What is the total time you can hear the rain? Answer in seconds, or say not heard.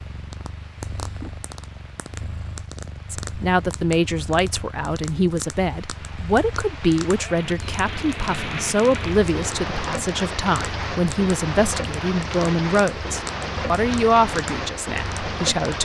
16 s.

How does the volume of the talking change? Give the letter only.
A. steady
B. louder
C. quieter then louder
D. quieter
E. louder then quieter
A.